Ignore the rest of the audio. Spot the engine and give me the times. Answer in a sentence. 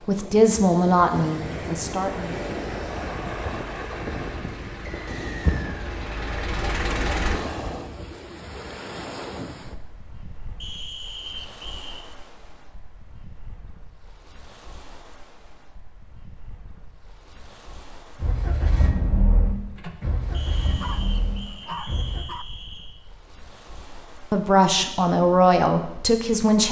You can hear the engine from 2.1 to 7.4 s and from 18.2 to 22.2 s.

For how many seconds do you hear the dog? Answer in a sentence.
The dog can be heard for 2 seconds in total.